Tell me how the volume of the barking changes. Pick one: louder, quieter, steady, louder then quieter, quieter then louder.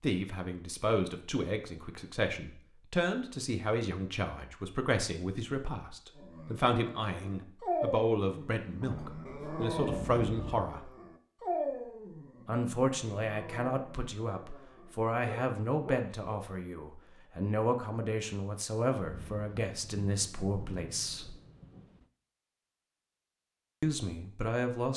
quieter.